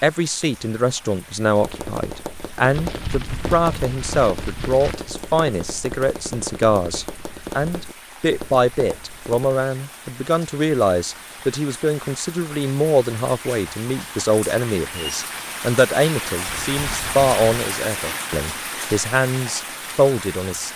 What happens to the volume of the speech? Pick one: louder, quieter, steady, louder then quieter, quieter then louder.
steady.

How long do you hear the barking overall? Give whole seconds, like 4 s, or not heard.
not heard.